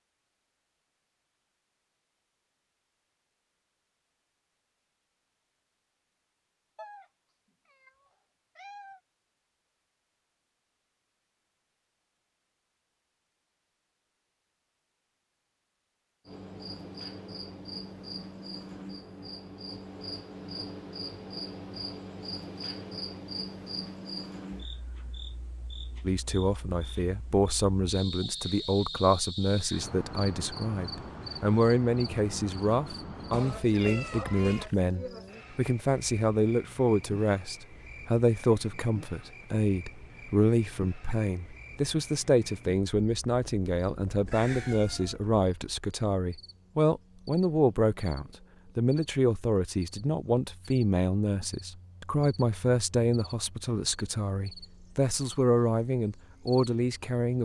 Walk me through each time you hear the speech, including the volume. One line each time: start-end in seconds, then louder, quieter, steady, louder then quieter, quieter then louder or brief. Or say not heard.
26.0-57.4 steady.